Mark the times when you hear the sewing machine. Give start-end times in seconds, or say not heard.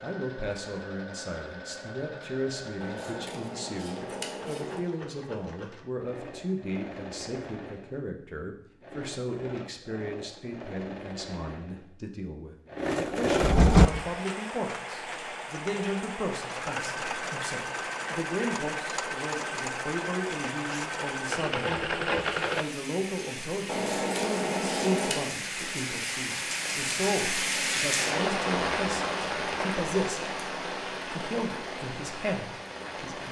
0.0-22.6.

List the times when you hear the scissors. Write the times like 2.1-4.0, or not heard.
2.8-4.8, 23.6-25.2.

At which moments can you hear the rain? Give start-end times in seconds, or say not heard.
13.8-33.2.